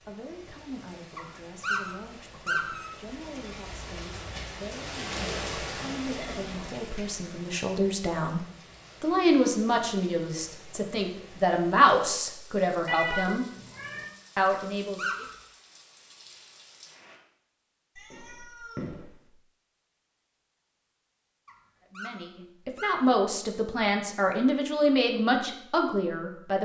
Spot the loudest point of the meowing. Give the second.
13 s.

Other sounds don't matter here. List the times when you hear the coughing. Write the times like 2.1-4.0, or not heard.
not heard.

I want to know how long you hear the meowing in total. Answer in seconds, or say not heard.
3 s.